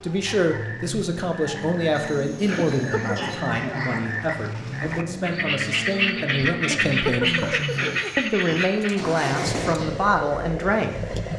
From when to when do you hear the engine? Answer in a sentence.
The engine can be heard from 0.1 to 11.3 s.